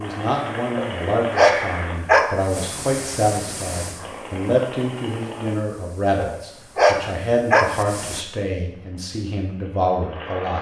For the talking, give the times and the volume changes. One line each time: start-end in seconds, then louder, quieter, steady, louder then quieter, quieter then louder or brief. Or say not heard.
0.0-10.5 steady.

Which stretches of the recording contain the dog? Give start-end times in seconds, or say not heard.
0.8-2.4, 6.2-7.8.